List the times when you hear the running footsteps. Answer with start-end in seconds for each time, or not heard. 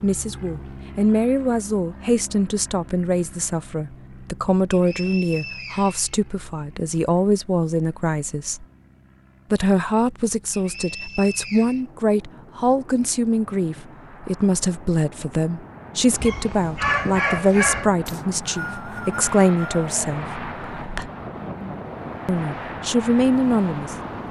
not heard.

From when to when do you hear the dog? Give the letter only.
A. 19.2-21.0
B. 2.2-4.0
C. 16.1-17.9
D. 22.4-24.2
C.